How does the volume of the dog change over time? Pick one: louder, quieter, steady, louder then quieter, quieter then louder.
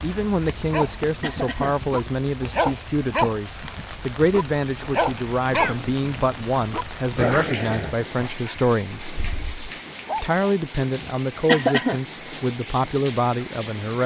quieter.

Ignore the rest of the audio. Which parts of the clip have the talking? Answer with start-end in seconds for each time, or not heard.
0.0-9.2, 10.2-14.0.